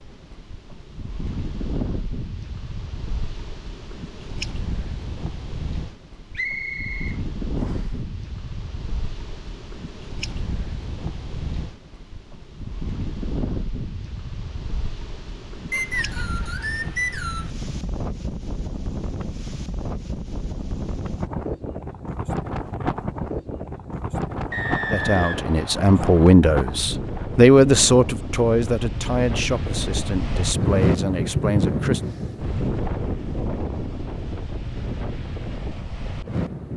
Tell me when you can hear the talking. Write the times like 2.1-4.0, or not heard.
24.9-32.0.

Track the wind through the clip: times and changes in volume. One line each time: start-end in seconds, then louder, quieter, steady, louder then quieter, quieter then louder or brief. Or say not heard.
0.0-36.7 louder.